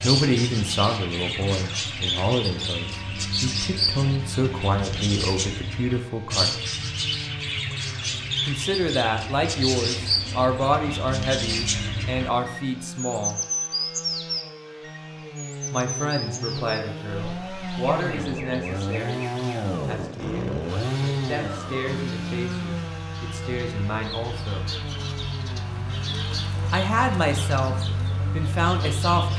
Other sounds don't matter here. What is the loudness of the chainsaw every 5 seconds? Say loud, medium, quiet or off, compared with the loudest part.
medium, medium, medium, loud, loud, medium.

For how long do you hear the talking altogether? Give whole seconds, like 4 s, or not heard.
23 s.